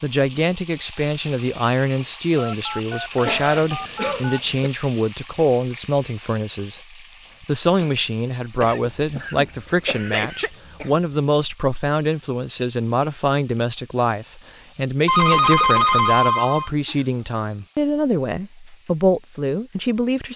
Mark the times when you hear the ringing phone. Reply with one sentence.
The ringing phone can be heard from 2.4 to 4.5 s and from 15.1 to 16.7 s.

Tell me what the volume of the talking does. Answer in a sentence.
The volume of the talking stays about the same.